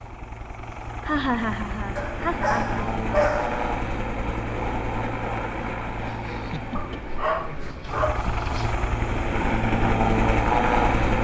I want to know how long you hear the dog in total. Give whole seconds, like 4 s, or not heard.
4 s.